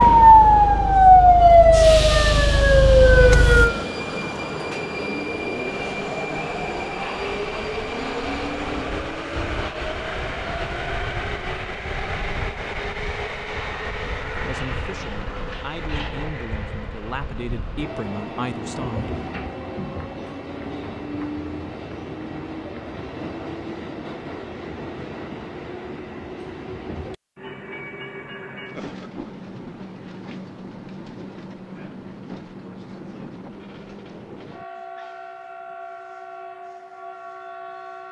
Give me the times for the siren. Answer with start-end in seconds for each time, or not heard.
0.0-4.7.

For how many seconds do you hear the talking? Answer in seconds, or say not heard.
5 s.